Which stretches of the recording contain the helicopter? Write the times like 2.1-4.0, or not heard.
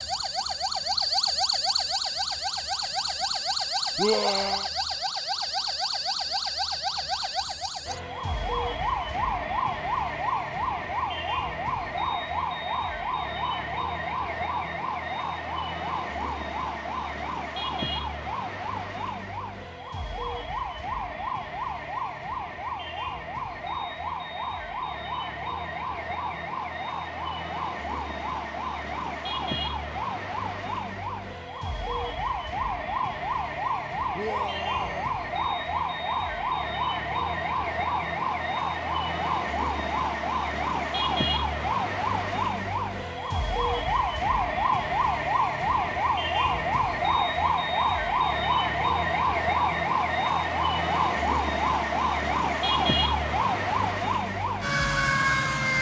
not heard.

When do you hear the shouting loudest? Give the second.
4 s.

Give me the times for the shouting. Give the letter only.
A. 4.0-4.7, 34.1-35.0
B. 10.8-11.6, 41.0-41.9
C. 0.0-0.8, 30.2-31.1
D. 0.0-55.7
A.